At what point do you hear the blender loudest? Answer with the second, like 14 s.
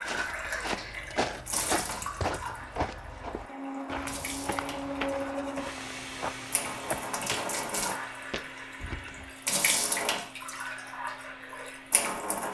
5 s.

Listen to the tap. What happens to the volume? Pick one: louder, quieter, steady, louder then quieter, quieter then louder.
quieter then louder.